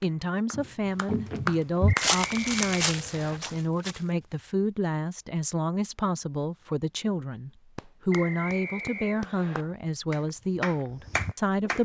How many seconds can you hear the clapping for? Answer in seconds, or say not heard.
6 s.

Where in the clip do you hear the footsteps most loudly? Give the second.
2 s.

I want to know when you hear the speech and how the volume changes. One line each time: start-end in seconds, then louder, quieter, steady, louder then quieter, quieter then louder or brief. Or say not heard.
0.0-11.8 steady.